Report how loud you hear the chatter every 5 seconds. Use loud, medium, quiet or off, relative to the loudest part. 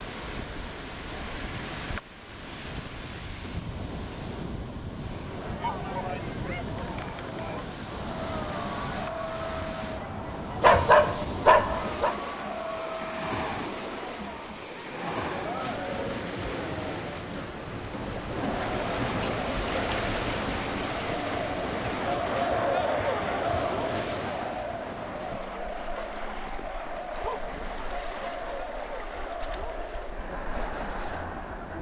off, medium, medium, medium, loud, medium, medium.